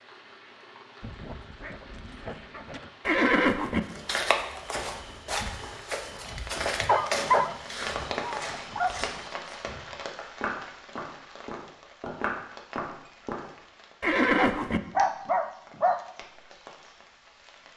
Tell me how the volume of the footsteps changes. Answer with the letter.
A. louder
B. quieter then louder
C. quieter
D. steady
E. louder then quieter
B.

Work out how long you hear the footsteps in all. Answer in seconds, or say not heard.
10 s.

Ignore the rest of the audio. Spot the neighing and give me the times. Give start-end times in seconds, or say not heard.
3.0-3.8, 14.0-14.8.